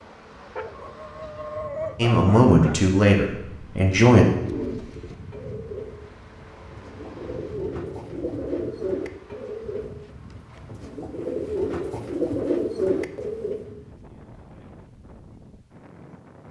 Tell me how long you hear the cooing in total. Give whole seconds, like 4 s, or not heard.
9 s.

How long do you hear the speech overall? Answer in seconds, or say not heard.
2 s.